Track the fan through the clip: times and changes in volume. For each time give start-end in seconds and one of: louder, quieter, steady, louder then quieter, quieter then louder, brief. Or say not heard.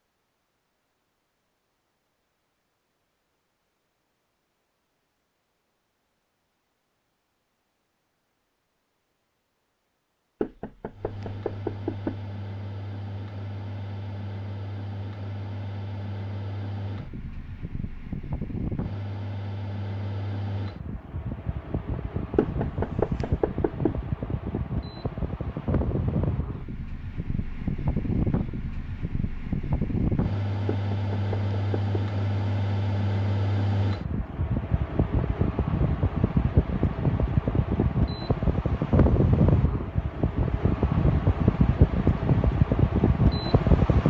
10.9-44.0 louder.